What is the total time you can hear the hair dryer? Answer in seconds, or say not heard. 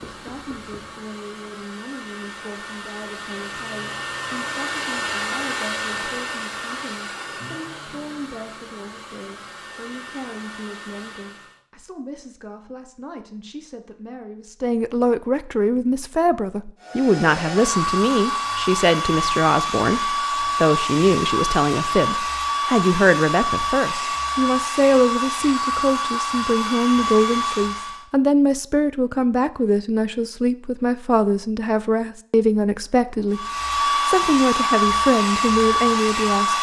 26 s.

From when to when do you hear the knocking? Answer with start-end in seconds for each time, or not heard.
0.0-1.1.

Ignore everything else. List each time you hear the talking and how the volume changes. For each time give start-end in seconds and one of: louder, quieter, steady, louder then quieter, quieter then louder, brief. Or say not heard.
0.1-36.5 louder.